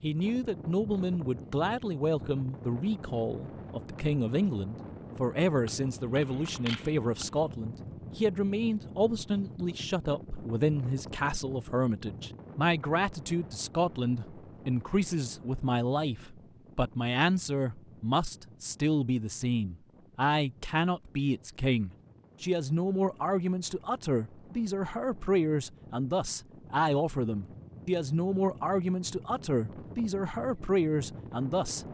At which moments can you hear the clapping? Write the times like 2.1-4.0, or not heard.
not heard.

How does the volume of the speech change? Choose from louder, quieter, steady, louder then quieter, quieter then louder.
steady.